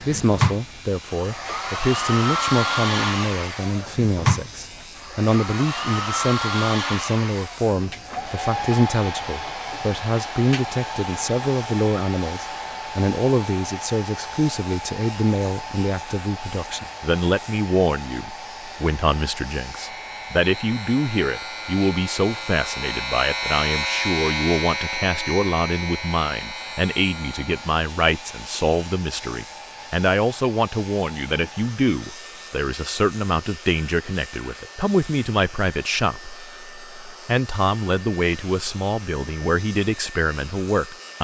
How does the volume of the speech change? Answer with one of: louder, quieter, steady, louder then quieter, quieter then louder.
steady.